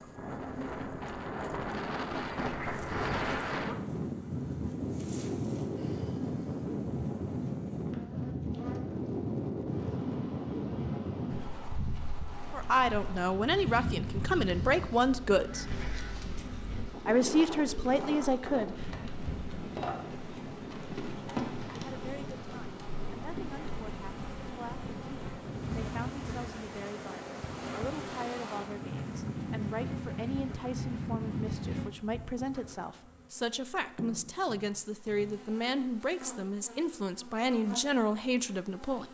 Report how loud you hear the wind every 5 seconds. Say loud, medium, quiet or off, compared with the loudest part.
loud, loud, loud, medium, medium, medium, loud, off.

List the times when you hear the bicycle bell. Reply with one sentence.
You can't hear the bicycle bell here.